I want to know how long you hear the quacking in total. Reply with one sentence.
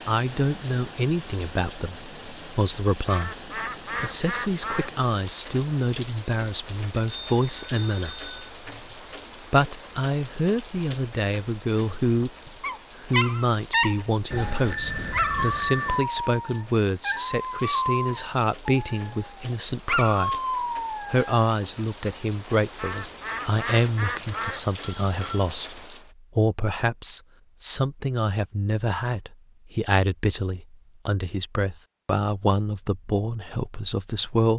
You can hear the quacking for 4 seconds altogether.